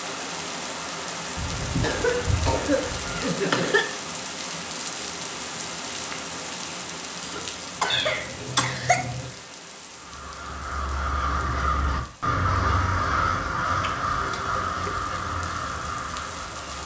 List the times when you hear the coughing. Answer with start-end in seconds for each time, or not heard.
1.8-3.9, 7.2-9.1, 14.2-14.8.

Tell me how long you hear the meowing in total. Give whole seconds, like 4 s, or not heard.
4 s.